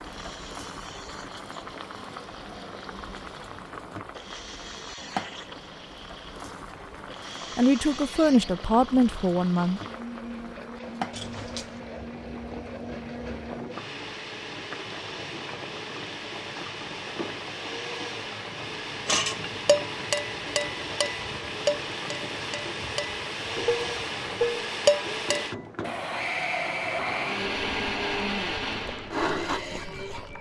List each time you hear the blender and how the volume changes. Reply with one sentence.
You can hear the blender from 0.0 to 30.3 s, getting louder.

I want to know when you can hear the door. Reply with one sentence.
You can hear the door from 11.1 to 11.8 s.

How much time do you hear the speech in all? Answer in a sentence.
The speech can be heard for 2 seconds in total.